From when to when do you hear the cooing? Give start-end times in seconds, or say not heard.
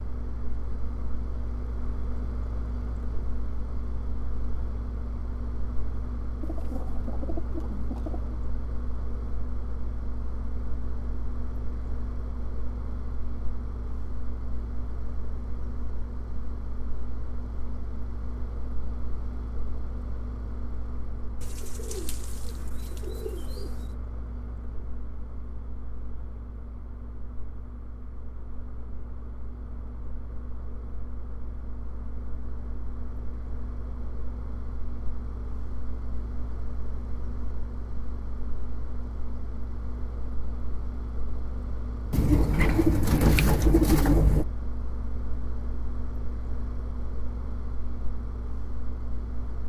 6.4-8.3, 21.4-23.9, 42.1-44.5.